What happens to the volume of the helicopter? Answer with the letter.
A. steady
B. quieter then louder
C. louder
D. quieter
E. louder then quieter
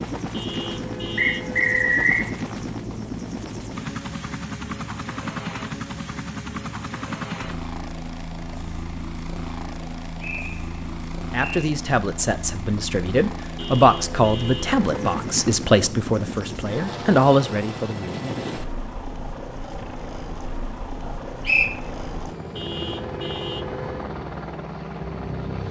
A.